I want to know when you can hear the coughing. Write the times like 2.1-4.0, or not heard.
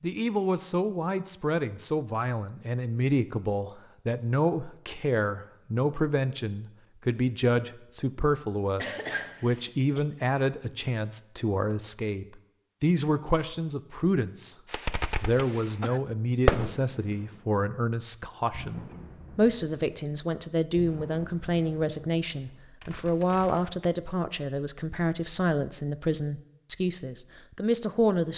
8.8-10.0.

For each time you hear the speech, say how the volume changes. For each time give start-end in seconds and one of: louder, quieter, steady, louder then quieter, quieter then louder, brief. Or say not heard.
0.0-14.6 steady
15.2-28.3 steady.